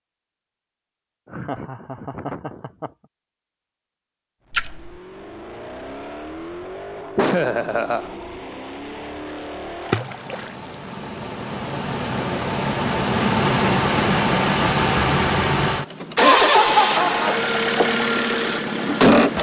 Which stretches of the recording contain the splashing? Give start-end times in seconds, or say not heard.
4.5-5.0, 9.8-10.8.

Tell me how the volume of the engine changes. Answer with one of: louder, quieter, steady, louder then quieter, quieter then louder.
louder.